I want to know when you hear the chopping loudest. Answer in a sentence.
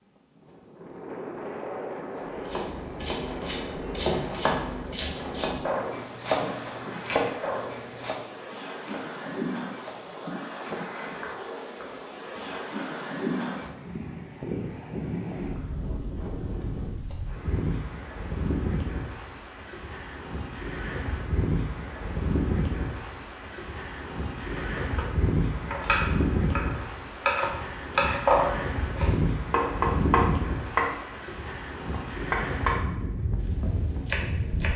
The volume of the chopping peaks at 28 seconds.